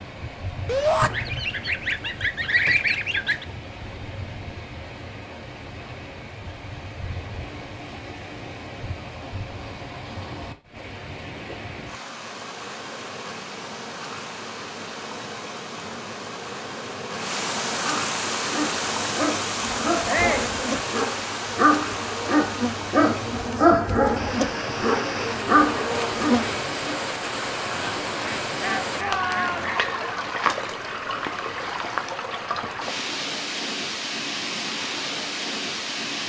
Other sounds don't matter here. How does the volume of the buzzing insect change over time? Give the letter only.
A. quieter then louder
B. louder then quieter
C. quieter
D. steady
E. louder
E.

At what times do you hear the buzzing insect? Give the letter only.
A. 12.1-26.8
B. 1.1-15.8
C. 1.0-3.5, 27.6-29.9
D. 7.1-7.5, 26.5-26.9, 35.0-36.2
A.